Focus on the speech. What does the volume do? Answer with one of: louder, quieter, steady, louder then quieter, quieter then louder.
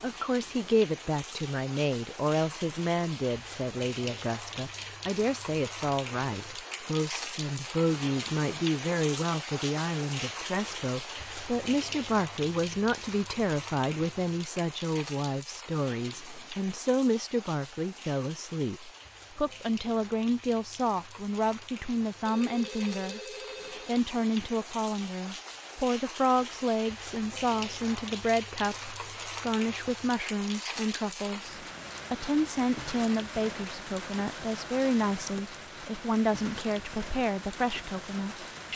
steady.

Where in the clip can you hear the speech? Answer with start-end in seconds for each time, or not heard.
0.0-23.2, 23.9-38.7.